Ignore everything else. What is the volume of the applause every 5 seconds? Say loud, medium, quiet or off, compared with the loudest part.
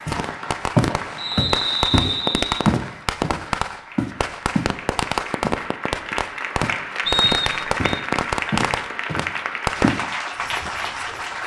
medium, loud, loud.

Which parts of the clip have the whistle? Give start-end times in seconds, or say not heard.
1.1-2.6, 7.0-8.0.